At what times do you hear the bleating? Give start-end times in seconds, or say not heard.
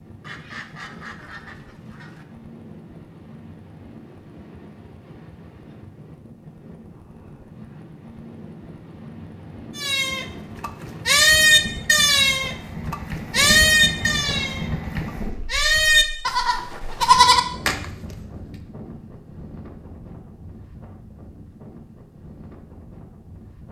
9.8-18.1.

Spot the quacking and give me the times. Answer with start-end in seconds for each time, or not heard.
0.2-2.2.